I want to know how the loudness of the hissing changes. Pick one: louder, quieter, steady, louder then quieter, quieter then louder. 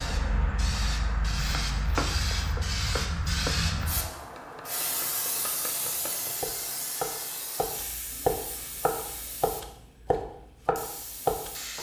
quieter.